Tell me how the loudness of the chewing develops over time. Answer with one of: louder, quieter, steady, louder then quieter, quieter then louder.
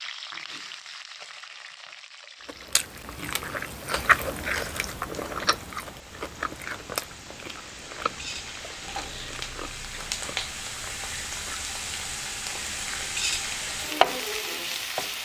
quieter.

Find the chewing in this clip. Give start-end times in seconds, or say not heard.
2.5-11.6.